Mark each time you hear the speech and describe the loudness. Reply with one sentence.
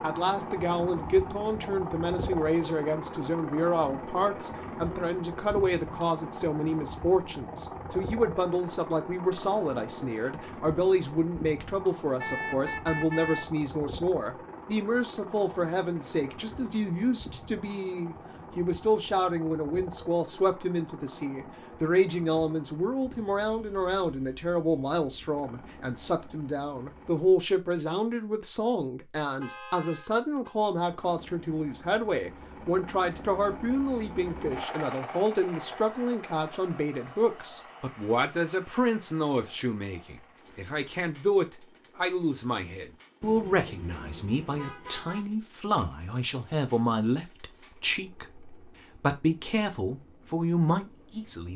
You can hear the speech from 0.0 to 51.5 s, at a steady volume.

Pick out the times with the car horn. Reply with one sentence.
You can hear the car horn from 12.2 to 13.4 s, from 29.4 to 30.6 s and from 43.2 to 45.2 s.